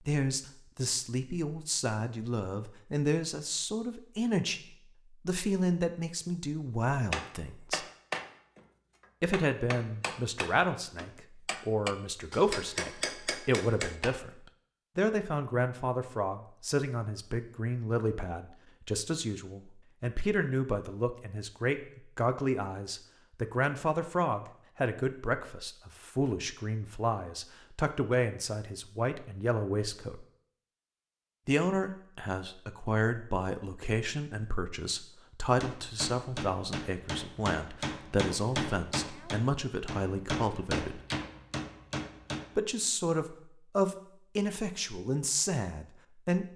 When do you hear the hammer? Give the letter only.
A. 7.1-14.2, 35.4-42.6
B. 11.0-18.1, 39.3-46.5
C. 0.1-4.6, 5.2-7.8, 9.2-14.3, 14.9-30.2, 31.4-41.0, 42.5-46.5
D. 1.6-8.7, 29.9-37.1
A.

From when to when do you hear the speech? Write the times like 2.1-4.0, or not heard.
0.1-4.6, 5.2-7.8, 9.2-14.3, 14.9-30.2, 31.4-41.0, 42.5-46.5.